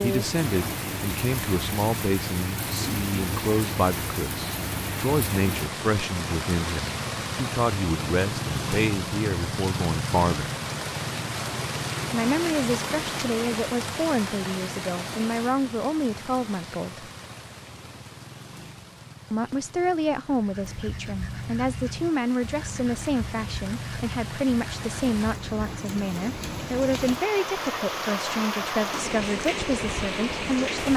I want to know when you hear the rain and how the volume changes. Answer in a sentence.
You can hear the rain from 0.0 to 30.9 s, getting quieter then louder.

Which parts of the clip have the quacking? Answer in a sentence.
You can hear the quacking from 20.2 to 26.0 s.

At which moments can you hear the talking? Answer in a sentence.
The talking can be heard from 0.0 to 10.5 s, from 12.1 to 17.1 s and from 19.3 to 30.9 s.